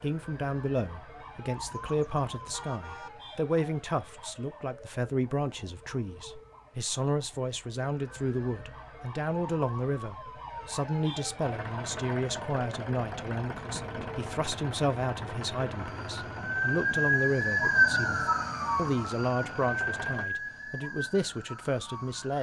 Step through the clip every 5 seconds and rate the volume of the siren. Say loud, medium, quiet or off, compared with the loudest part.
quiet, quiet, quiet, loud, medium.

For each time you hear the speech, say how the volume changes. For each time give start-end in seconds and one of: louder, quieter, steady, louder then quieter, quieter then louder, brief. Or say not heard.
0.0-22.3 steady.